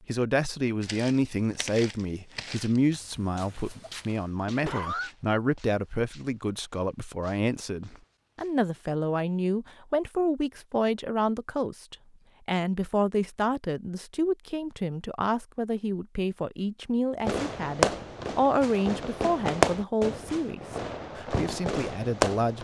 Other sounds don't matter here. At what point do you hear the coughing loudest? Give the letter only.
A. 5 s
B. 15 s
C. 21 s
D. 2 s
A.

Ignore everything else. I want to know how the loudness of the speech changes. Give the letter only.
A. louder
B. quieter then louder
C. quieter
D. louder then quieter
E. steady
E.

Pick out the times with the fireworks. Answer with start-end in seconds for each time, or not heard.
17.2-22.5.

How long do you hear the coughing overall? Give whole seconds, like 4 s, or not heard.
2 s.